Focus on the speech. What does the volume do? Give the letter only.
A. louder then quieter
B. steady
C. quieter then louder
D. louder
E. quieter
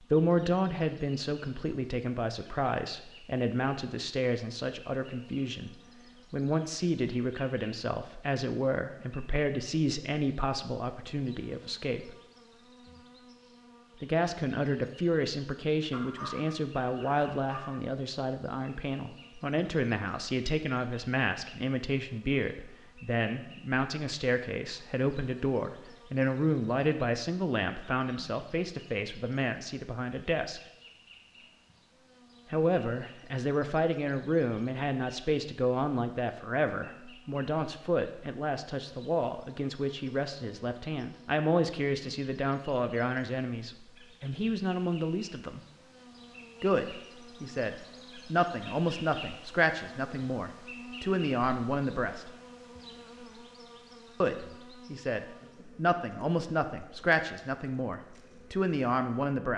B.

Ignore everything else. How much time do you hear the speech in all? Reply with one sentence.
The speech can be heard for 53 seconds in total.